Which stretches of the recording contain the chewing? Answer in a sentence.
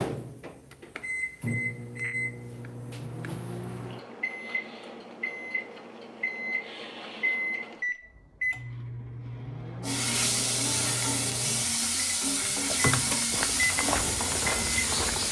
You can't hear the chewing here.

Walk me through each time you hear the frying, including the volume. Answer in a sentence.
You can hear the frying from 9.8 to 15.2 s, at a steady volume.